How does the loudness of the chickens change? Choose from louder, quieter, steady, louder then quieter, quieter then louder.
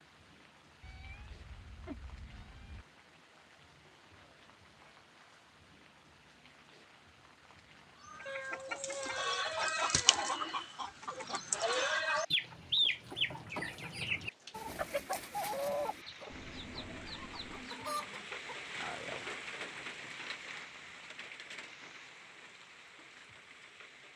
quieter.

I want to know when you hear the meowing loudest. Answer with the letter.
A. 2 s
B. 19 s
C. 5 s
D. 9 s
D.